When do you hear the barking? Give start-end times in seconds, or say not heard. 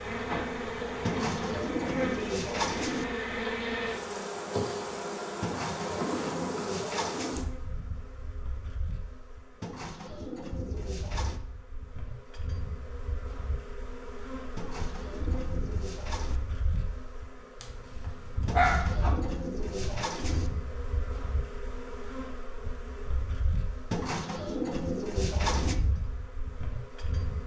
17.6-19.1.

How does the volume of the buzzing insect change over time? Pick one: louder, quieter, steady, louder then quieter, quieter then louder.
quieter.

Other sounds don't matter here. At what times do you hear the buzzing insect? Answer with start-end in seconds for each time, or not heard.
0.0-27.4.